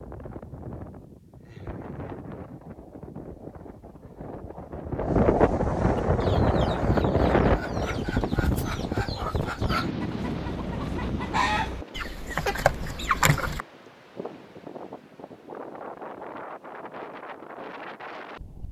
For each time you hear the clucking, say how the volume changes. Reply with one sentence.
You can hear the clucking from 6.0 to 13.7 s, getting louder.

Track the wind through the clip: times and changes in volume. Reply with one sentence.
The wind can be heard from 0.0 to 18.6 s, getting louder then quieter.